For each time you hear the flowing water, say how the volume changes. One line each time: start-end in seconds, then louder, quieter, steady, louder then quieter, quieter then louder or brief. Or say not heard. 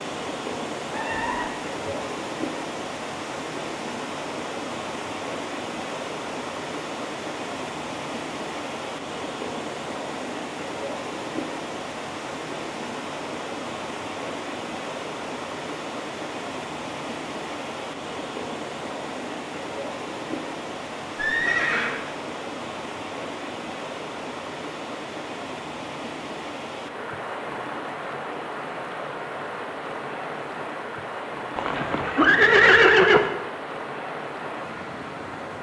0.0-35.5 steady.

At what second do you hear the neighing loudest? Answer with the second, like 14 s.
33 s.